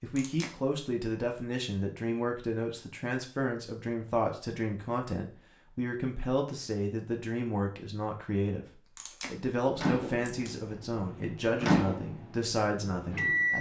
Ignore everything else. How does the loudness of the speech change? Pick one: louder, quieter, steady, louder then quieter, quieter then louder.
steady.